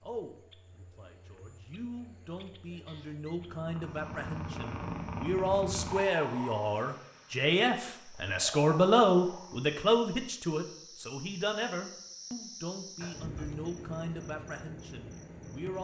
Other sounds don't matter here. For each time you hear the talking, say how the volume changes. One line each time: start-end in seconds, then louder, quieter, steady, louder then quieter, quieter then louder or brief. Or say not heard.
0.0-15.7 louder then quieter.